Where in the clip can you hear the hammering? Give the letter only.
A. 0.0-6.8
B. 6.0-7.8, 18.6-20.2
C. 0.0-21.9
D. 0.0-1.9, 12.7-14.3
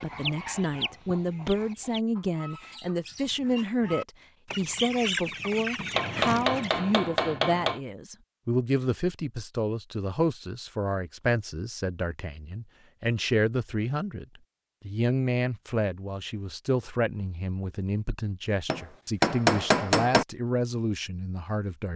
B.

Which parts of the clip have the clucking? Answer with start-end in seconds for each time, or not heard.
0.0-6.8.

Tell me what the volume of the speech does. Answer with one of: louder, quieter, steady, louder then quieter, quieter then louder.
steady.